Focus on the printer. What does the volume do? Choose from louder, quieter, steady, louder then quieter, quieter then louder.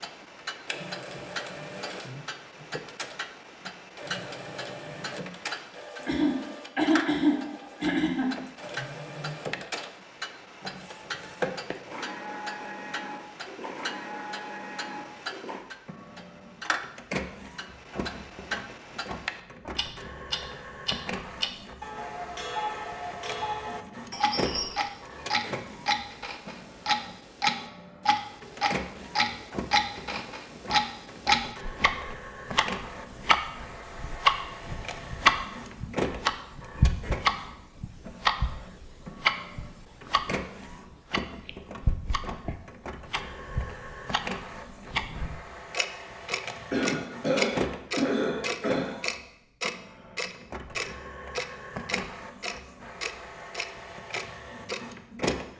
steady.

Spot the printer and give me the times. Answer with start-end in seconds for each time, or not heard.
0.0-55.5.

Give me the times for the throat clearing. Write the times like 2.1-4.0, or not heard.
6.0-8.5, 24.1-24.8, 46.7-49.0.